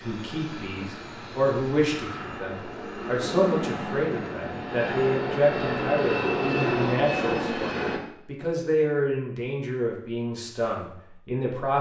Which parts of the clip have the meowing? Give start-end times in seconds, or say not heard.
not heard.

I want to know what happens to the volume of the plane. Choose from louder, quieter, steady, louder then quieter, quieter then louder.
louder.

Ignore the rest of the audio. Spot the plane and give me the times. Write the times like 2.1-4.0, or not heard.
0.0-8.0.